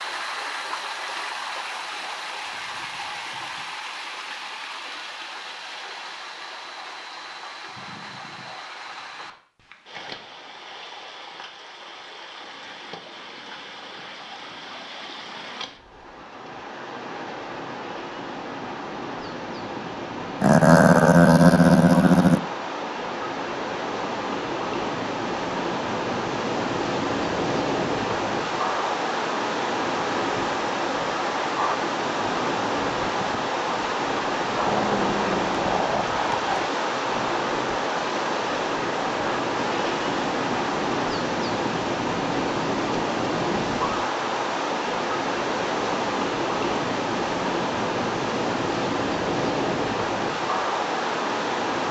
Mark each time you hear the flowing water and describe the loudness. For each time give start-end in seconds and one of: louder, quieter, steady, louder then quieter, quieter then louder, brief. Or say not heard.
0.0-51.8 louder.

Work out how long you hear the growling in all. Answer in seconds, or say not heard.
4 s.